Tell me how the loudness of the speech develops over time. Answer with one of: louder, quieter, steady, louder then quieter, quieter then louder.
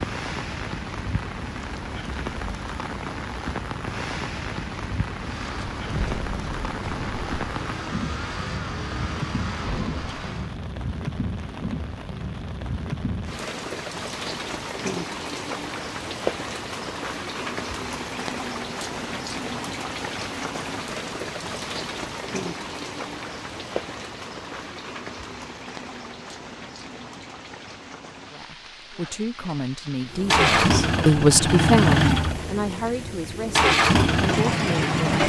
louder then quieter.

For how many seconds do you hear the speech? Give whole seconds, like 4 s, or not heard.
7 s.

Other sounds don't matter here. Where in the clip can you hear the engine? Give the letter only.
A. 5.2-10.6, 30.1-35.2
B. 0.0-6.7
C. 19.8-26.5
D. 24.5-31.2
A.